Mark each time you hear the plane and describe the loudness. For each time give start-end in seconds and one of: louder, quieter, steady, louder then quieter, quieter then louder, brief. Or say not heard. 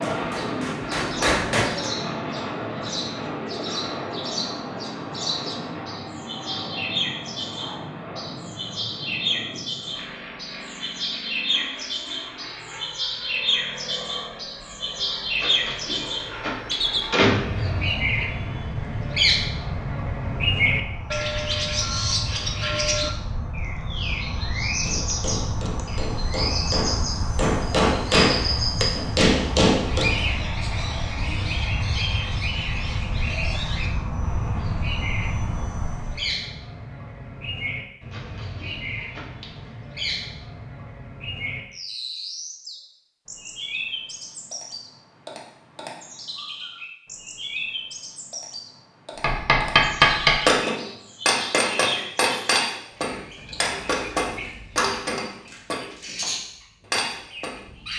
0.0-36.4 quieter then louder.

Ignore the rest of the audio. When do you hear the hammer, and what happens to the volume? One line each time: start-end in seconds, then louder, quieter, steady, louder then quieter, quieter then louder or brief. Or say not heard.
0.0-1.9 brief
24.8-30.1 louder
49.2-57.6 quieter.